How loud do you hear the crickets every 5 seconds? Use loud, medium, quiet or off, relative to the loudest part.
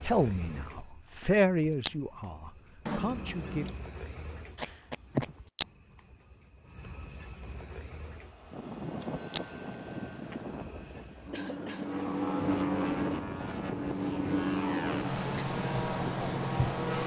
loud, loud, medium, medium.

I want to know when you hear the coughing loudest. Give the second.
5 s.